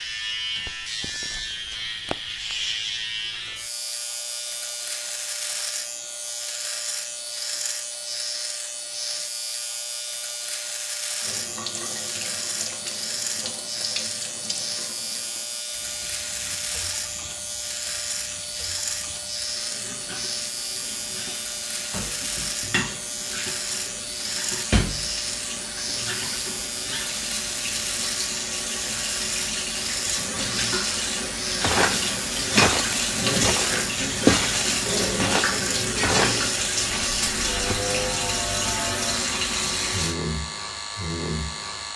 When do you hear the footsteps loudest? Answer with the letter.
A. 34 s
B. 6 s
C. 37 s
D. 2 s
A.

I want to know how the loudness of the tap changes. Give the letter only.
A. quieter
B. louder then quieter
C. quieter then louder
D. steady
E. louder
E.